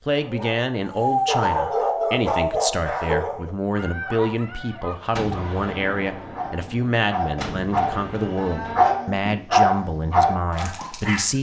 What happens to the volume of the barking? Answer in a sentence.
The volume of the barking goes down, then up.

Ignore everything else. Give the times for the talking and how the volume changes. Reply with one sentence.
The talking can be heard from 0.1 to 11.3 s, at a steady volume.